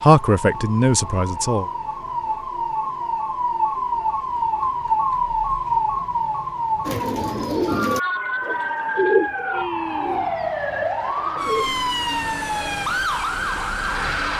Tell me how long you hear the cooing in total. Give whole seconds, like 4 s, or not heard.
5 s.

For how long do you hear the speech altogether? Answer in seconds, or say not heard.
2 s.